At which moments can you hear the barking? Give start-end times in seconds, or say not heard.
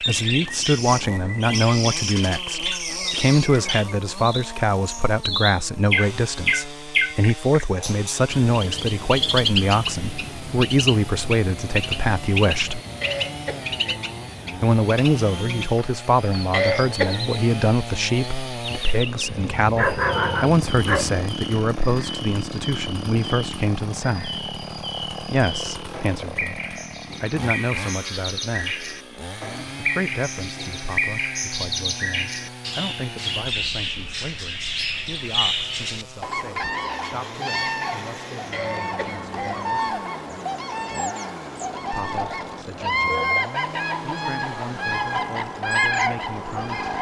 19.2-21.2.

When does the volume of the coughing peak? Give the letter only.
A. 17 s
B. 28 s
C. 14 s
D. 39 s
A.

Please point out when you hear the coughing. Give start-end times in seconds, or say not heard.
13.0-14.0, 16.5-17.2, 38.5-39.6.